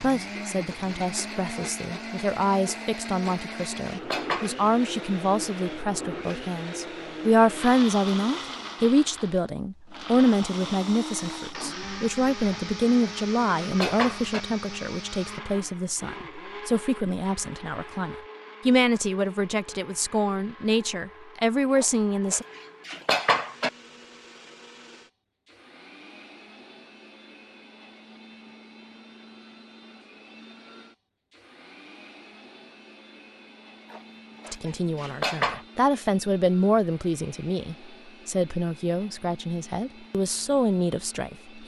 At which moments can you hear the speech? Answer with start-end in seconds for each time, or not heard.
0.0-22.4, 34.5-41.6.